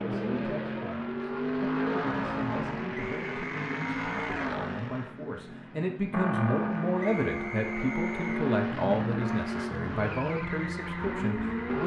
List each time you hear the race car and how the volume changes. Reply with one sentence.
The race car can be heard from 0.0 to 11.8 s, at a steady volume.